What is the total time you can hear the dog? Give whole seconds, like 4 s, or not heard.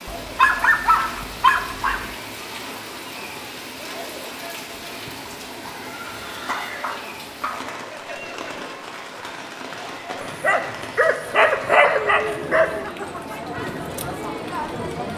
6 s.